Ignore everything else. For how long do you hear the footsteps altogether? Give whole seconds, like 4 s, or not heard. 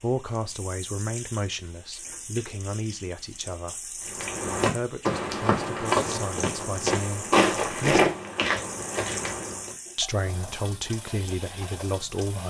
6 s.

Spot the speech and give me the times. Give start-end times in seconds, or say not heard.
0.0-8.1, 9.9-12.4.